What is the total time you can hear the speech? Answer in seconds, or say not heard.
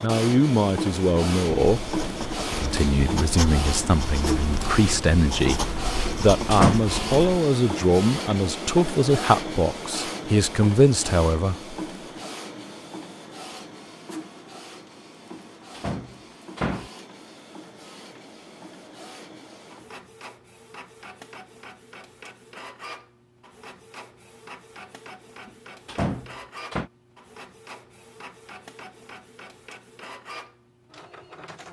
12 s.